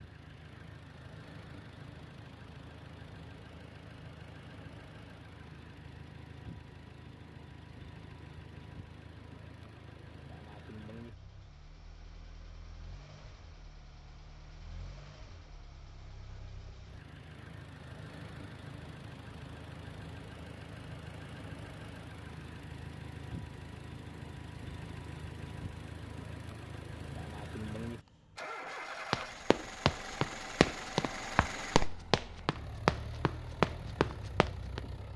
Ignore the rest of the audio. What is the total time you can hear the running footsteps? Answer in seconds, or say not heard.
6 s.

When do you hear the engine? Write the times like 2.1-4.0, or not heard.
0.0-35.1.